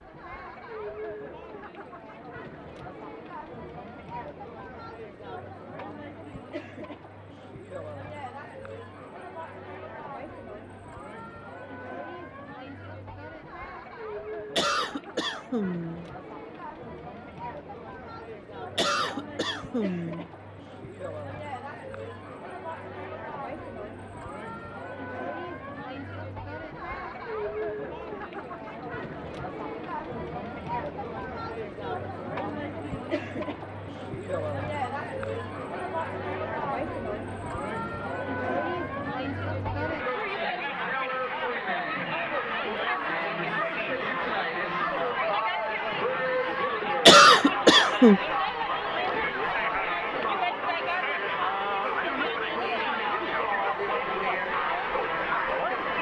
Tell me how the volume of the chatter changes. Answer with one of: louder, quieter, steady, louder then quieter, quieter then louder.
louder.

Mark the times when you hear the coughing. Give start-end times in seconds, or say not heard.
14.6-16.1, 18.8-20.2, 47.0-48.2.